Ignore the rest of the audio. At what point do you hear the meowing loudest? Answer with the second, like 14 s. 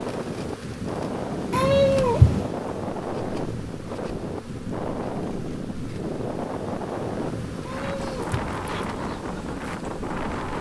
2 s.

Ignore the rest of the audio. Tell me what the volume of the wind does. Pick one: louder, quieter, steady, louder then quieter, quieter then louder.
steady.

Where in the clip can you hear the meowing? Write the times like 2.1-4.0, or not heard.
1.5-2.5, 7.7-8.8.